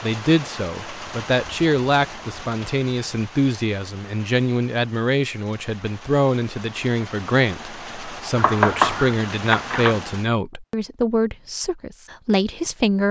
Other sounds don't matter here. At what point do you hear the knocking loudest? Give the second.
9 s.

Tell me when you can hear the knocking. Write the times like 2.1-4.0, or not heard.
8.3-10.0.